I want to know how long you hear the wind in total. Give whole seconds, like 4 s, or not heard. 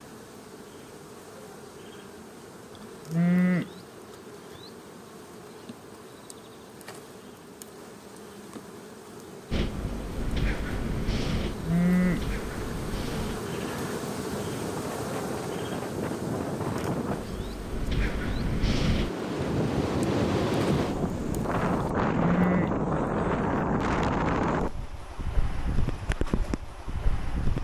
18 s.